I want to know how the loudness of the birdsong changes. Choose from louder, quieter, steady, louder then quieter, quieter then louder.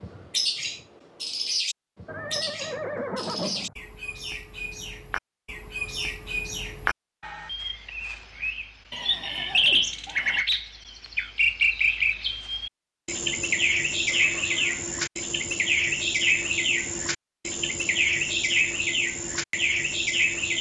louder.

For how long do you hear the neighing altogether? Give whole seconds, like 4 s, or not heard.
4 s.